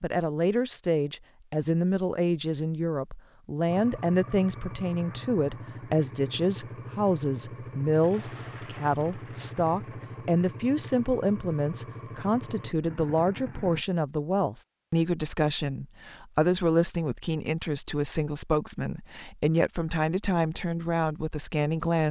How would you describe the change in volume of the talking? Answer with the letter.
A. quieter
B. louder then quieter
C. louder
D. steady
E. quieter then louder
D.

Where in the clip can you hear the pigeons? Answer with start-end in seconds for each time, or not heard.
not heard.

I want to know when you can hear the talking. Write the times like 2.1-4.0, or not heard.
0.0-22.0.